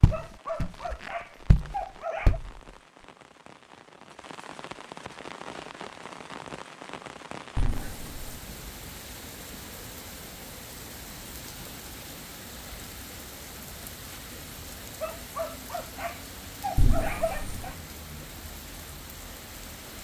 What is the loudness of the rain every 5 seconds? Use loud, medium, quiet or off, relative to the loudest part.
medium, loud, loud, loud.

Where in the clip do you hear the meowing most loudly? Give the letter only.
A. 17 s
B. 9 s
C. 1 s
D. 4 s
A.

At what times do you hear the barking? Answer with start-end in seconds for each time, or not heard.
0.1-2.4, 15.0-17.8.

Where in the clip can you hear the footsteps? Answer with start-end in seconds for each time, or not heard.
0.0-2.5.